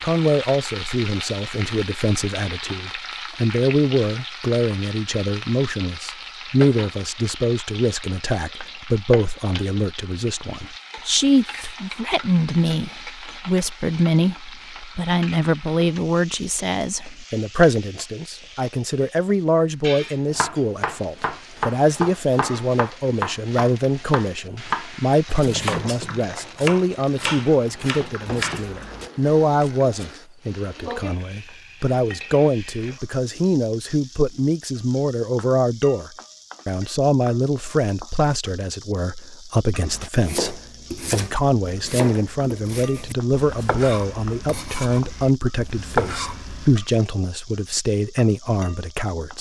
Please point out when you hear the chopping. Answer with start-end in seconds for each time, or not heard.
20.3-29.9, 39.9-46.8.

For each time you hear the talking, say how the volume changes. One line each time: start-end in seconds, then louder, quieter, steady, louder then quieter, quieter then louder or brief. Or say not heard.
0.0-49.3 steady.